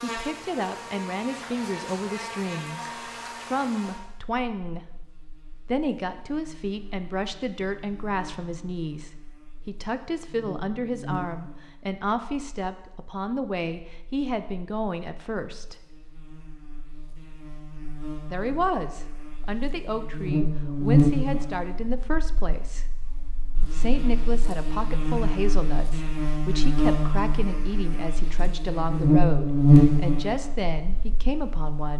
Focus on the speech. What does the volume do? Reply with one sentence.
The volume of the speech stays about the same.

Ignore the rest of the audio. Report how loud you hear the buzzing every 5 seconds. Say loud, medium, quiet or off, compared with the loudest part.
quiet, quiet, quiet, quiet, medium, loud, quiet.